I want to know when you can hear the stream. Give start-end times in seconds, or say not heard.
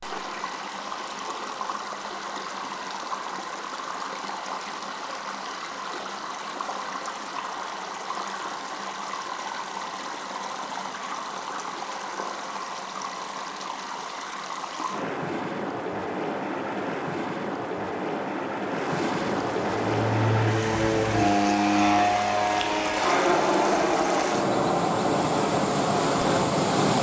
0.0-26.9.